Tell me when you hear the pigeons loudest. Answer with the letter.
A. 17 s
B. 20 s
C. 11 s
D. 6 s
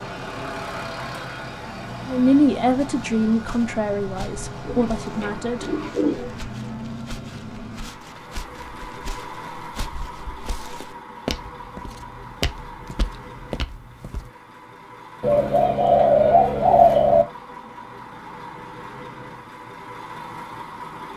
A.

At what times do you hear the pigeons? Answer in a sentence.
You can hear the pigeons from 4.7 to 6.3 s and from 15.2 to 17.2 s.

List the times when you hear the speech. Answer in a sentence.
The speech can be heard from 2.0 to 5.7 s.